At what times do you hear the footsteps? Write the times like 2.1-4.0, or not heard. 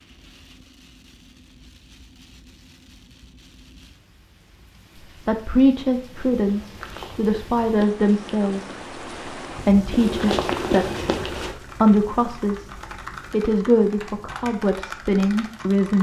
6.1-11.6.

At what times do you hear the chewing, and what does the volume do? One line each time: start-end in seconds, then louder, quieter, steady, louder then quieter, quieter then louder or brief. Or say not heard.
not heard.